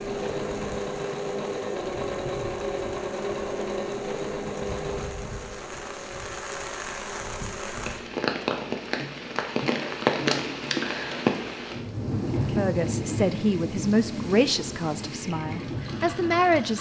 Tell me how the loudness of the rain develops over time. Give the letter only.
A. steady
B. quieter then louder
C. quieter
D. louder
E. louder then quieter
E.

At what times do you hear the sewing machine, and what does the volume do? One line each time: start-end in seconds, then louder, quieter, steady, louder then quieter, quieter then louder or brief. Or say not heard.
0.0-16.7 quieter.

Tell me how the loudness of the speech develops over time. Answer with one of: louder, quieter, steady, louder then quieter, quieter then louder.
quieter then louder.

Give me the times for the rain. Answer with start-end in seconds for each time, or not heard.
0.0-16.7.